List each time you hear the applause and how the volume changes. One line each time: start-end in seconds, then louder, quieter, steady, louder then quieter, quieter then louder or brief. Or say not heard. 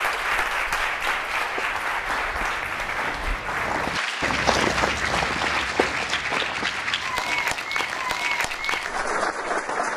0.0-9.9 steady.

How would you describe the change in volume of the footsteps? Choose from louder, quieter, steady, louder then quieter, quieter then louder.
louder then quieter.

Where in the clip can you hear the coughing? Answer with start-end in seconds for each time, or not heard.
not heard.